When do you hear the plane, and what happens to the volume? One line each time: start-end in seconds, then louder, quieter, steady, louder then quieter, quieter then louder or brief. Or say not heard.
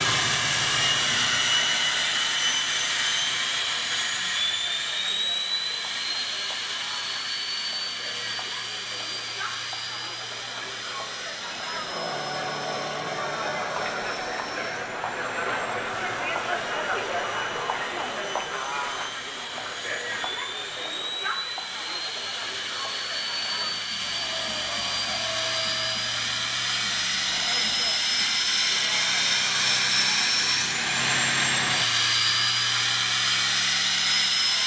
0.0-34.6 quieter then louder.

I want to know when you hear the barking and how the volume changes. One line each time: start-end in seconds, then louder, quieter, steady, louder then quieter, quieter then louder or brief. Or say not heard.
not heard.